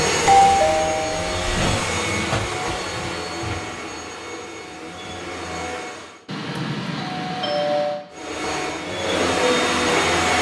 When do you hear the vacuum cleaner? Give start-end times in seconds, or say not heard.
0.0-6.2, 8.1-10.3.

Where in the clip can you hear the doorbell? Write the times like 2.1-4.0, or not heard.
0.2-1.6, 6.2-8.1.